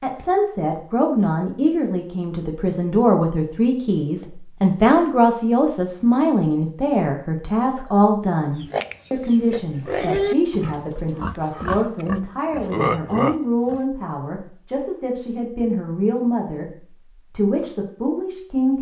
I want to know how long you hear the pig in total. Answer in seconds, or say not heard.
5 s.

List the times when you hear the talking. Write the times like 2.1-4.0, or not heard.
0.0-18.7.